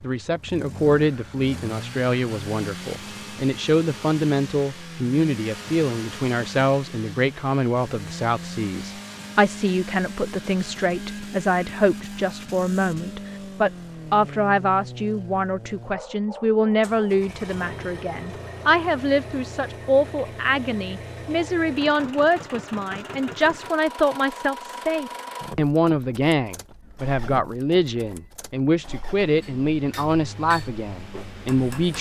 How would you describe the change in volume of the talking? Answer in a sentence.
The loudness of the talking stays about the same.